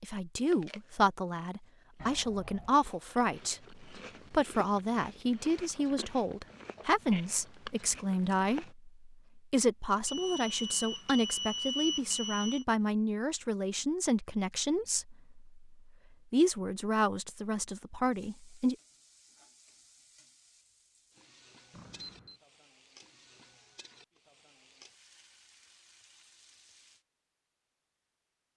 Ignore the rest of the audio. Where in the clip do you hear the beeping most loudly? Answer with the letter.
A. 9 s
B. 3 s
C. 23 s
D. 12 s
D.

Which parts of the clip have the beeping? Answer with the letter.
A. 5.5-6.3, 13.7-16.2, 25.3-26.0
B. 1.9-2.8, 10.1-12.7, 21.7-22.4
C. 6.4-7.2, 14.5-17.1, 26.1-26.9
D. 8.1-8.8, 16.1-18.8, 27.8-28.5
B.